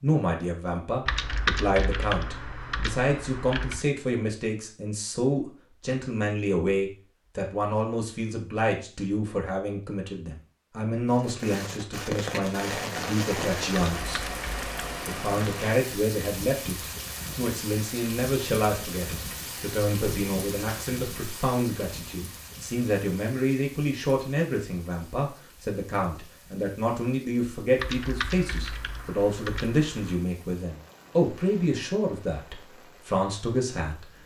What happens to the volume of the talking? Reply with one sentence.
The loudness of the talking stays about the same.